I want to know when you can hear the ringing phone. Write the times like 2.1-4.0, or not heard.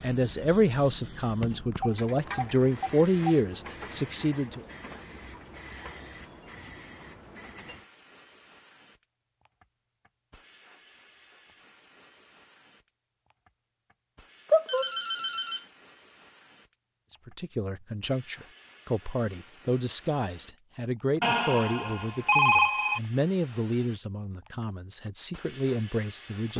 1.7-3.4, 14.5-15.7, 21.2-23.0.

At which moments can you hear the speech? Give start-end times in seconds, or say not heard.
0.0-4.7, 17.1-26.5.